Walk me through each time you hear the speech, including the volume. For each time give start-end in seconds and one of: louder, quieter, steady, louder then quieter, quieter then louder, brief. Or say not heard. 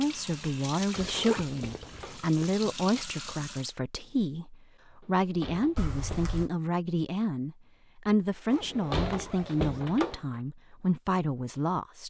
0.0-12.0 steady.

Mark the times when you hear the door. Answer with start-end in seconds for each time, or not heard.
0.8-2.2, 5.0-6.3, 8.5-10.3.